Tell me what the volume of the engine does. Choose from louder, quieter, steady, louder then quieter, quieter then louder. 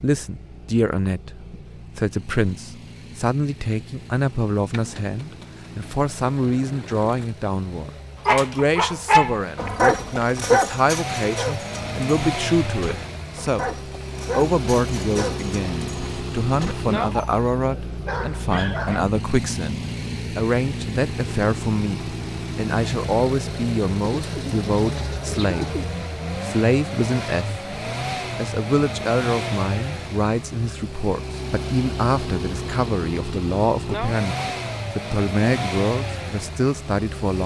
louder.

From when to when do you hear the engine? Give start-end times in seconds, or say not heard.
0.0-37.4.